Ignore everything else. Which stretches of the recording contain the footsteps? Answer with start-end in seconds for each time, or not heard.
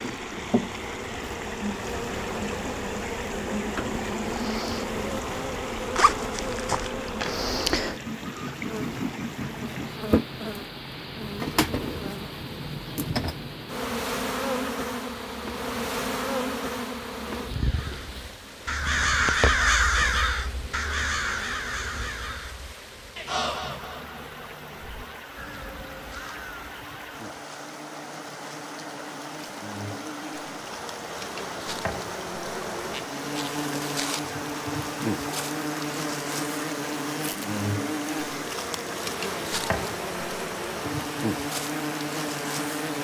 not heard.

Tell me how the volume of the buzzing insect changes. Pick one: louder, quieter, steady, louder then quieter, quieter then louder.
quieter then louder.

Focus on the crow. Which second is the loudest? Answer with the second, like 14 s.
20 s.